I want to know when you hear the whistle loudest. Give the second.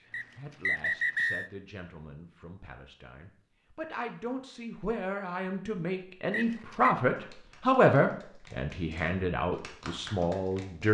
1 s.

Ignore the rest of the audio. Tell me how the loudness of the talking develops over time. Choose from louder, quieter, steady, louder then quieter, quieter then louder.
louder then quieter.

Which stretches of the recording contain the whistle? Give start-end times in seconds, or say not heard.
0.1-1.5, 6.3-7.0.